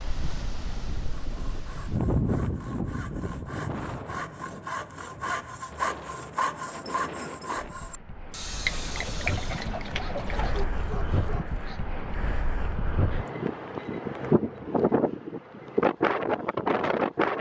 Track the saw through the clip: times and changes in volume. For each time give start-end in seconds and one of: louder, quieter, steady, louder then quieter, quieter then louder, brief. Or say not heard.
1.2-11.7 louder then quieter.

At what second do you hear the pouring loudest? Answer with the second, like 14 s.
9 s.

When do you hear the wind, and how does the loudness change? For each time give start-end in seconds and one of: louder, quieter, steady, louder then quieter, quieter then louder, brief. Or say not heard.
0.0-17.3 quieter then louder.